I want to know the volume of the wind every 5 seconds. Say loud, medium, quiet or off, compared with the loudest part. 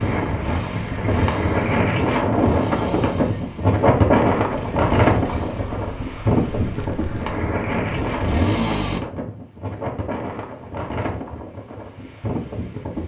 loud, loud, medium.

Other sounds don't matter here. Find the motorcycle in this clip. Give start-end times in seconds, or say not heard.
0.0-9.0.